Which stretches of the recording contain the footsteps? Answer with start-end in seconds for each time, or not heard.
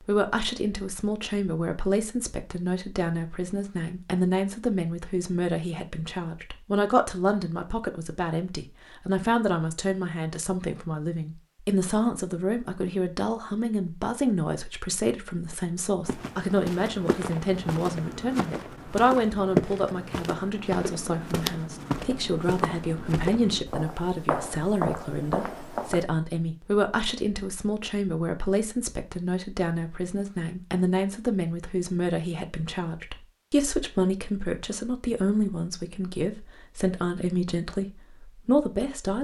16.1-26.1.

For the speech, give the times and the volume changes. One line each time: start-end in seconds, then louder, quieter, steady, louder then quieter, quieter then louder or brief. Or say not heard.
0.0-39.2 steady.